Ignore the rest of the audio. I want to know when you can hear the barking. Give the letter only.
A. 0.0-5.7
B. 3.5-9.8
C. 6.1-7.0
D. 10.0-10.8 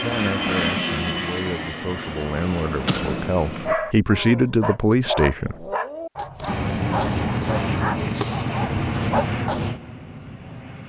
B.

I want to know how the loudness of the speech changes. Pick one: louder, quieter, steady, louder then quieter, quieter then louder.
louder.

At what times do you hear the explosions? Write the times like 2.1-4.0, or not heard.
2.9-3.7.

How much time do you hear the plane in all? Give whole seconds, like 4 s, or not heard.
8 s.